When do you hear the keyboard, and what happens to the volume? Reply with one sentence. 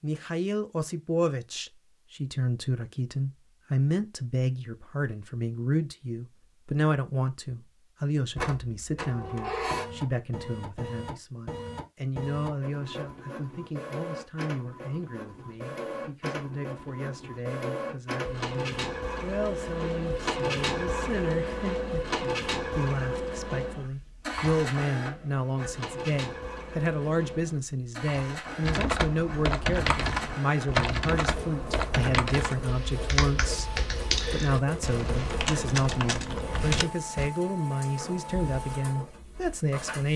You can hear the keyboard from 28.6 to 37.3 s, at a steady volume.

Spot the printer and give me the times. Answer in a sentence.
The printer can be heard from 8.3 to 40.1 s.